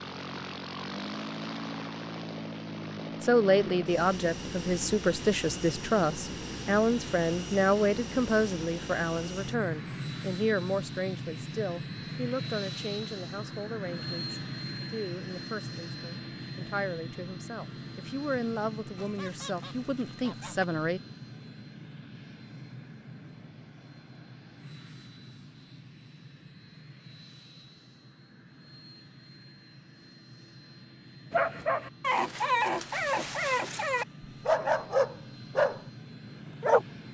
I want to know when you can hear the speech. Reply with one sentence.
The speech can be heard from 3.2 to 21.0 s.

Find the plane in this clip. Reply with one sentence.
You can hear the plane from 0.0 to 37.0 s.